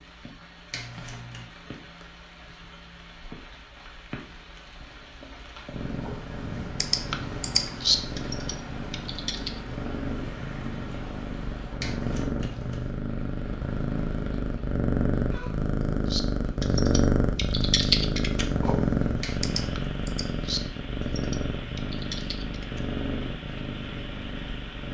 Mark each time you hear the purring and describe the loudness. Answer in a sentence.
The purring can be heard from 5.7 to 24.8 s, getting louder then quieter.